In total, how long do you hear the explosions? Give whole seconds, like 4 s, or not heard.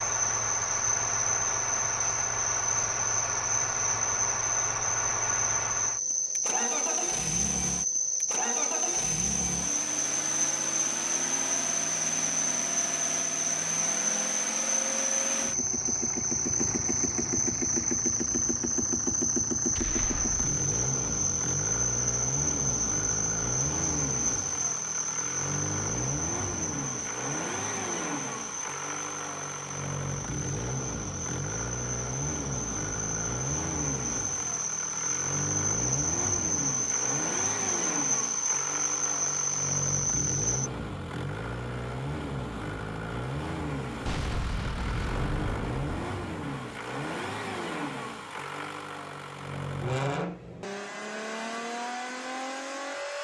3 s.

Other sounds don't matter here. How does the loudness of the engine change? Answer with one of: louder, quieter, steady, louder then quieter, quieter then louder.
steady.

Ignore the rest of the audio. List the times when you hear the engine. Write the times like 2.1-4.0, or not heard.
0.0-53.1.